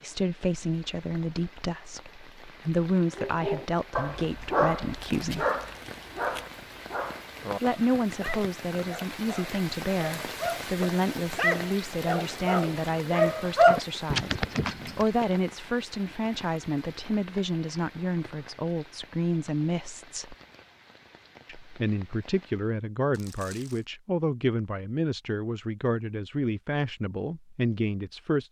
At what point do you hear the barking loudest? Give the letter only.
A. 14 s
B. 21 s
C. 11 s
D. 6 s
A.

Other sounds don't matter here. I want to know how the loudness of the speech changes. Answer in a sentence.
The volume of the speech stays about the same.